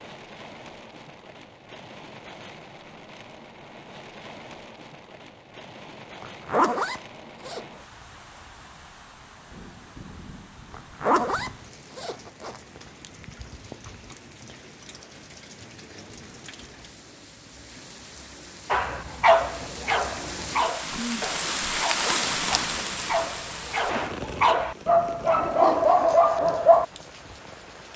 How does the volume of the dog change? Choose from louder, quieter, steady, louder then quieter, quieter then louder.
quieter then louder.